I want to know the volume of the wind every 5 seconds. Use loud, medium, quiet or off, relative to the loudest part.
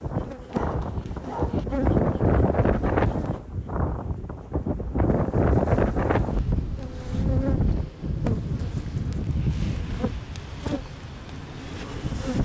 loud, loud, medium.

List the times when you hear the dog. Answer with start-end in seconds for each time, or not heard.
0.5-1.6.